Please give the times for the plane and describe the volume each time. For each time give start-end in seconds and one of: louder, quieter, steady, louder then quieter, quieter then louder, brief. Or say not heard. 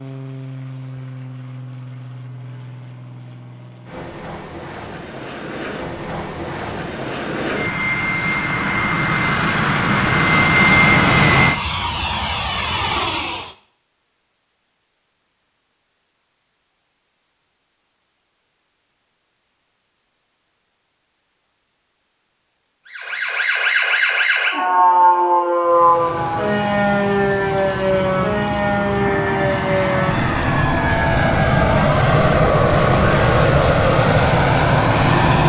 0.0-13.6 louder
25.6-35.4 louder.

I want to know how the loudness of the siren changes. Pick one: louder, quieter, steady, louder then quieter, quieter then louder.
quieter.